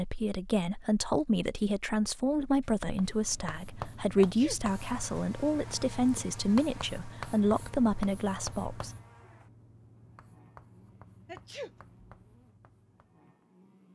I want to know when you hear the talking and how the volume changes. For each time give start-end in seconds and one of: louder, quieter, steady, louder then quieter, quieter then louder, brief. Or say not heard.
0.0-8.9 steady.